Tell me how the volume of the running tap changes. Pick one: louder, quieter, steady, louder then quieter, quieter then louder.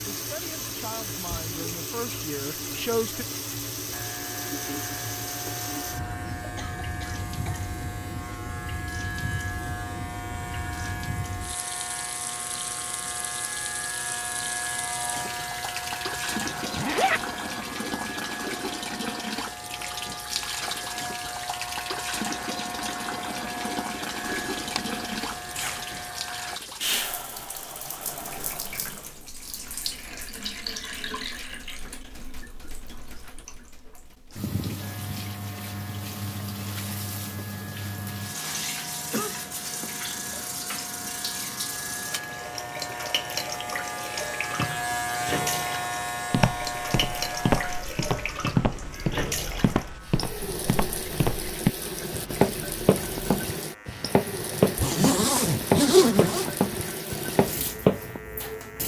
steady.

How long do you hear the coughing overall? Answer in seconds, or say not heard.
2 s.